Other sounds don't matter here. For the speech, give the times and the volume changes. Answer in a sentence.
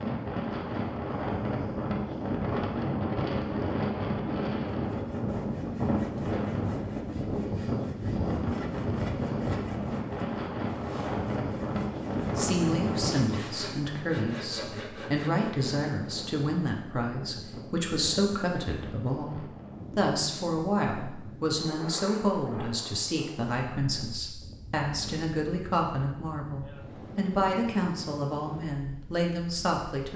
The speech can be heard from 12.3 to 30.1 s, at a steady volume.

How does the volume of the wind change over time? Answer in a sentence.
The volume of the wind goes down.